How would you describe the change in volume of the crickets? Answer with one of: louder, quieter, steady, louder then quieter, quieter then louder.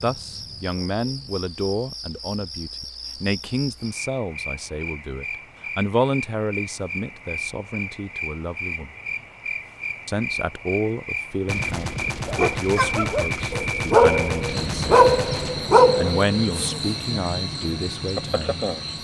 louder.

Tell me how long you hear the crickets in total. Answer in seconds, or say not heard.
19 s.